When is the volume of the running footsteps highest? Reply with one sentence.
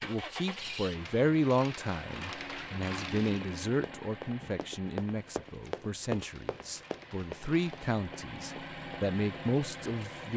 The loudest moment of the running footsteps is at 6 seconds.